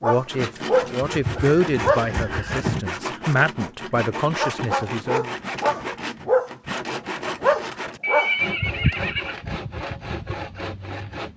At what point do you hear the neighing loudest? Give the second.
8 s.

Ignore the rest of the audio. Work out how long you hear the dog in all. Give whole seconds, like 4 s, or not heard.
6 s.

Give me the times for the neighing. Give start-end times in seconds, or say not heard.
1.1-2.9, 8.0-9.3.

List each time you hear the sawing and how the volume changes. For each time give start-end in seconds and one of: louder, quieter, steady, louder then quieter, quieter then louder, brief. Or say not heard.
0.2-11.3 steady.